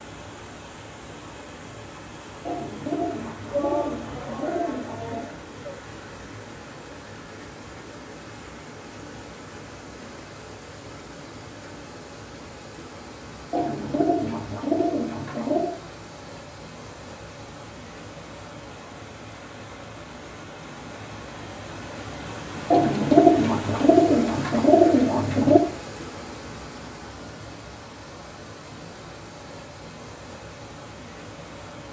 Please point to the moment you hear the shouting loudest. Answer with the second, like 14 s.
4 s.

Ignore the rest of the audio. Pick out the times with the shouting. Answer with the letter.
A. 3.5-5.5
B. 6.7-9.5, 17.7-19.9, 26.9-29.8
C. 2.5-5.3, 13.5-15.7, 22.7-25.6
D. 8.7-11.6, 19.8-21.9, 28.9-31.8
A.